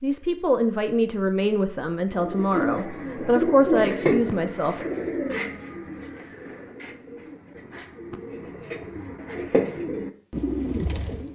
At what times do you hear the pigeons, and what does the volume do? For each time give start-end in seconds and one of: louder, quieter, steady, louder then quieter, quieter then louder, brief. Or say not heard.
2.1-11.3 quieter then louder.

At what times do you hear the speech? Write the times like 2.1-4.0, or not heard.
0.0-4.8.